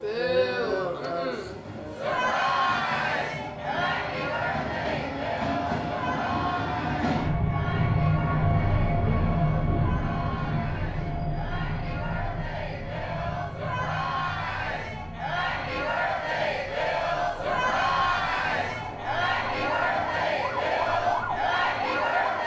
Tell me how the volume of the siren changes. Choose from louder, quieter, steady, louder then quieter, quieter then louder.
louder.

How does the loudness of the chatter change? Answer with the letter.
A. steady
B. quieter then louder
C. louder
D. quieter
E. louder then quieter
B.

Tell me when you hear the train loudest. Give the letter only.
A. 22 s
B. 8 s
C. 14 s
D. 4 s
B.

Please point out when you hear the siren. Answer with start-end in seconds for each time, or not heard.
17.3-22.4.